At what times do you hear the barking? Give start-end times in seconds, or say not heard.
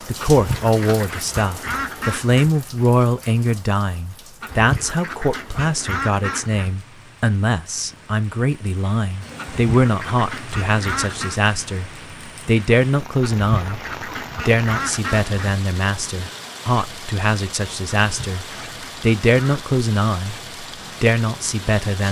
not heard.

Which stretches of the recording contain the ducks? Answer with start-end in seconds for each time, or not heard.
0.2-2.5, 4.4-6.8, 9.3-11.4, 13.2-15.6, 18.0-19.6.